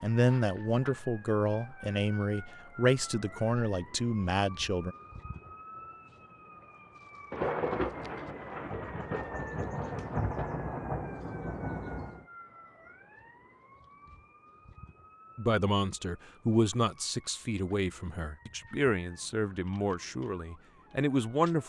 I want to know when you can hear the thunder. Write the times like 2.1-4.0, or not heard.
7.3-12.2.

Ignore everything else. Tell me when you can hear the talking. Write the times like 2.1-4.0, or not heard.
0.0-5.0, 15.3-21.6.